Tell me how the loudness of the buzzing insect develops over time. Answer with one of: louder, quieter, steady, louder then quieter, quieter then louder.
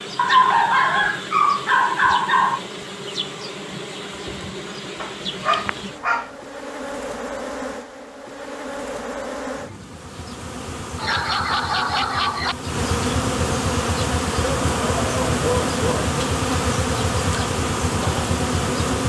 louder.